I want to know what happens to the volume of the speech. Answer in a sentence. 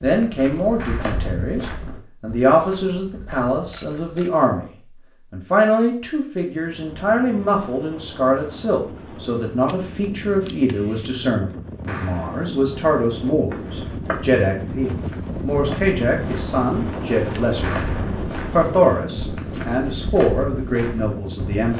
The volume of the speech stays about the same.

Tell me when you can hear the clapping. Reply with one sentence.
The clapping can be heard from 0.8 to 1.2 s, from 11.8 to 12.4 s and from 17.6 to 18.1 s.